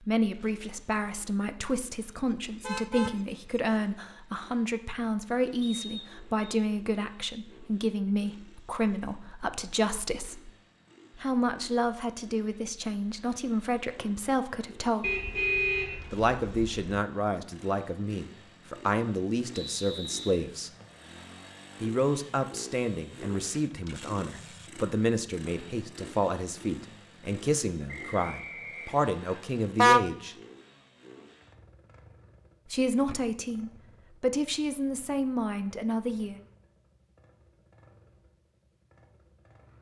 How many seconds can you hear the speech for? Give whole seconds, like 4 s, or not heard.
31 s.